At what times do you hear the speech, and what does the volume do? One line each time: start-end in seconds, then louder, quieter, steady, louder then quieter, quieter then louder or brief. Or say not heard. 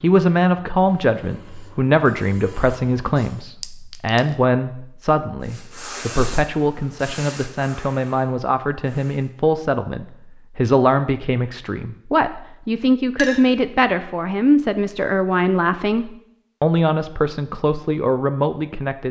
0.0-19.0 steady.